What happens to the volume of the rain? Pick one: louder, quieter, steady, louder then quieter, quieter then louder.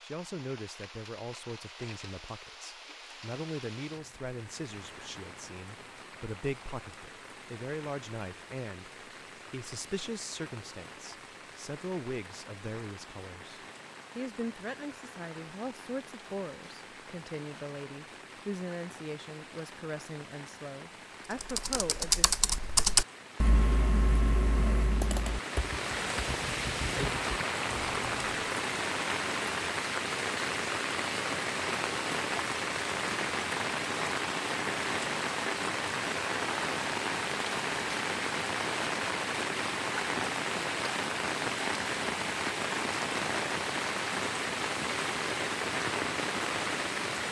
louder.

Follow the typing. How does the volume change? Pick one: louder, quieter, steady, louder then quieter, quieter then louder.
quieter.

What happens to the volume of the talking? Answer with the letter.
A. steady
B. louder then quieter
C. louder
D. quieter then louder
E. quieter
A.